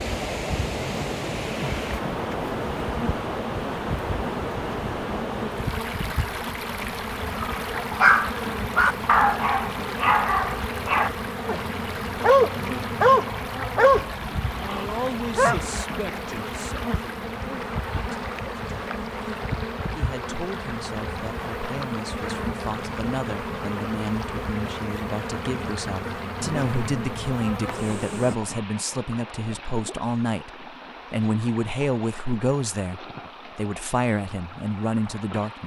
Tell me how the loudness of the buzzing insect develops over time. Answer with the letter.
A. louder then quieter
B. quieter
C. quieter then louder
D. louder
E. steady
E.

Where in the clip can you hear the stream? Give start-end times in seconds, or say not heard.
0.0-35.6.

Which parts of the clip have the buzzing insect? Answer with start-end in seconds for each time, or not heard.
0.0-28.4.